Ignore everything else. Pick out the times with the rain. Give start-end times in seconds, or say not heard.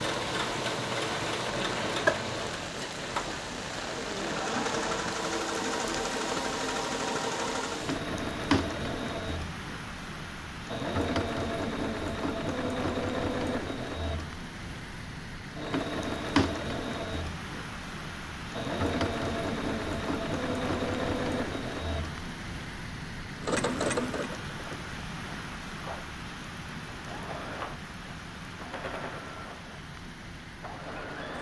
0.0-31.3.